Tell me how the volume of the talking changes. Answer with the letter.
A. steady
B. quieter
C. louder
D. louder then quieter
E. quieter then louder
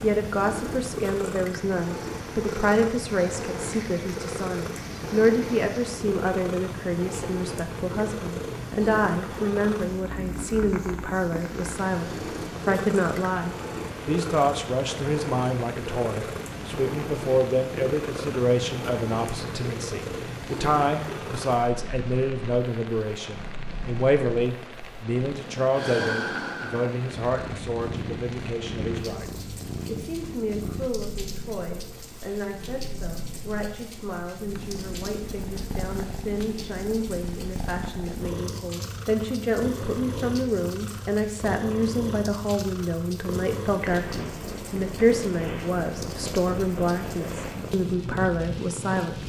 E.